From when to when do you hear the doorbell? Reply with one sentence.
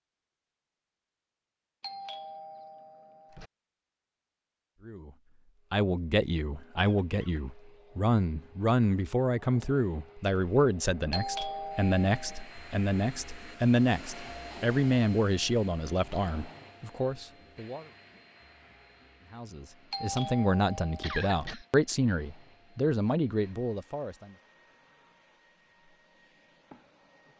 The doorbell can be heard from 1.8 to 3.5 s, from 11.1 to 12.5 s and from 19.9 to 21.6 s.